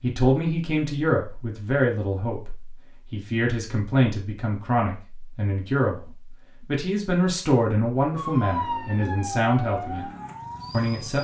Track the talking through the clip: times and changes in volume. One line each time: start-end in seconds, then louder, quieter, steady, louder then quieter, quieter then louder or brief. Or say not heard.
0.0-10.1 steady
10.7-11.1 brief.